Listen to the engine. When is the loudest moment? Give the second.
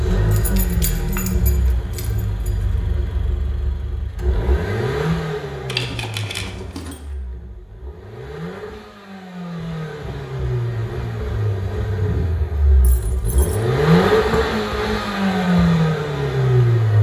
14 s.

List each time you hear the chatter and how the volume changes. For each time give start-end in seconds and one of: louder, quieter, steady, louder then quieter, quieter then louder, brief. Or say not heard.
not heard.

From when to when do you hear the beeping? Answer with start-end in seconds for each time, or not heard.
not heard.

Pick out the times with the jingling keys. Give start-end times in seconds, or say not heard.
0.3-2.5, 5.7-7.0, 12.8-13.7.